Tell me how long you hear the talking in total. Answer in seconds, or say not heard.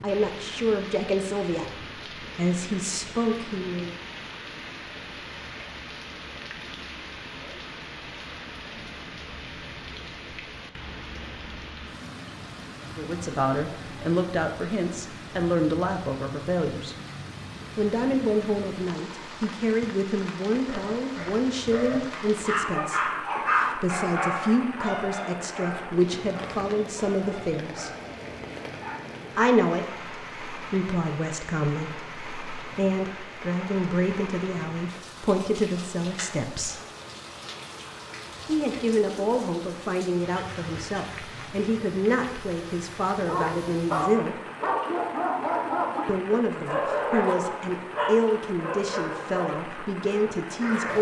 36 s.